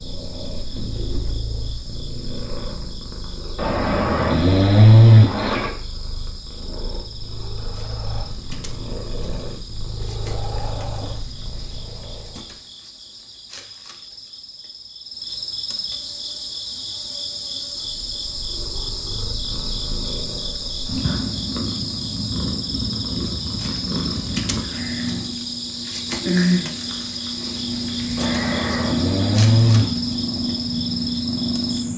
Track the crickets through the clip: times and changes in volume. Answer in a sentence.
The crickets can be heard from 0.0 to 31.9 s, getting louder.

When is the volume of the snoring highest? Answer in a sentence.
The loudest moment of the snoring is at 5 seconds.